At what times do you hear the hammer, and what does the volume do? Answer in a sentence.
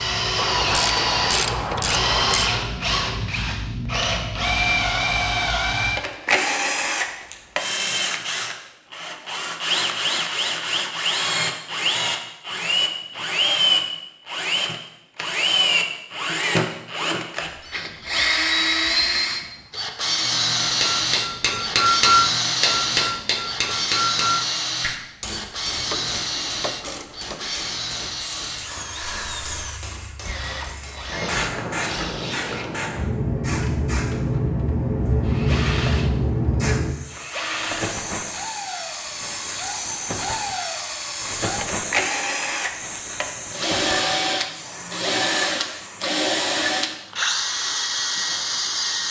The hammer can be heard from 20.6 to 31.1 s, getting quieter.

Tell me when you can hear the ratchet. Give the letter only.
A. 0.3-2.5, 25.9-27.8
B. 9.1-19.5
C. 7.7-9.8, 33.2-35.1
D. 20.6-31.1
A.